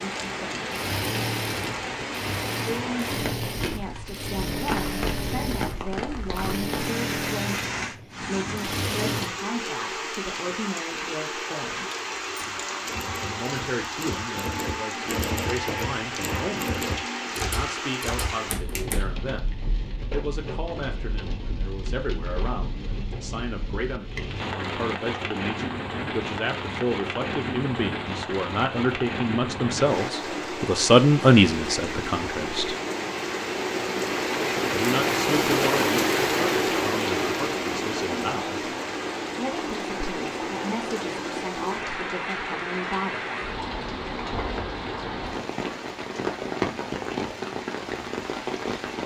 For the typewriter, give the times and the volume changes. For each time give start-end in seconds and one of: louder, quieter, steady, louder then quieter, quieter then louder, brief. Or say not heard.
11.9-19.1 louder.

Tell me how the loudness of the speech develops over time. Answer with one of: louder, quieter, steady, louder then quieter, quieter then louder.
louder then quieter.